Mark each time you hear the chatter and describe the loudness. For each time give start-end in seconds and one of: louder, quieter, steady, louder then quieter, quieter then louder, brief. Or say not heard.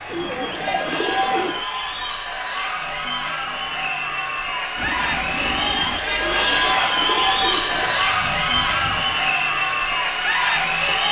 0.0-11.0 louder.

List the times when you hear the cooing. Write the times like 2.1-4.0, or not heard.
0.1-1.6, 6.2-8.1.